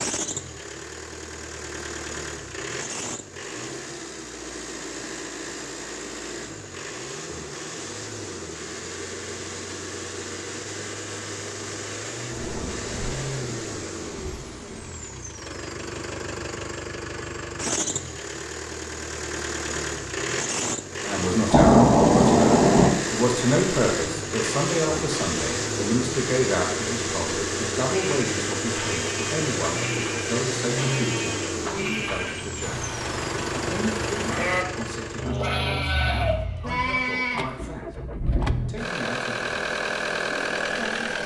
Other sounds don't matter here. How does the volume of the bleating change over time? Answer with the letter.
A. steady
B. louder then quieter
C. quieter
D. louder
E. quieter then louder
D.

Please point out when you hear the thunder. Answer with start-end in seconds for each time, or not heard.
12.3-14.9, 21.5-22.9.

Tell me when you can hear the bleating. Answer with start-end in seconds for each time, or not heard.
28.0-37.6.